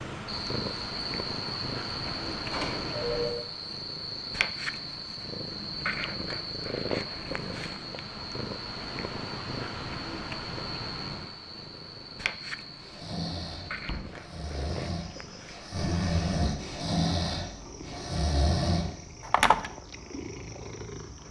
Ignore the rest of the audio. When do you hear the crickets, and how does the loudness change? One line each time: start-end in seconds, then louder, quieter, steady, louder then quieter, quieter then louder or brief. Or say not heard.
0.0-21.2 quieter.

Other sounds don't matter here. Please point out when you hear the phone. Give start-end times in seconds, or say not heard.
2.1-3.5, 19.2-19.7.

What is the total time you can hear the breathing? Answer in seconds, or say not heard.
6 s.